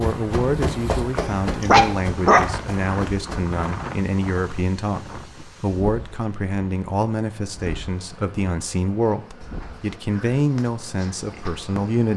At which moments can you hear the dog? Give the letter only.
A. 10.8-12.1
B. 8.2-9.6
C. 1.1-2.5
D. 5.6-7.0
C.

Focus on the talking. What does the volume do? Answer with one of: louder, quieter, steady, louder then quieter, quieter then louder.
steady.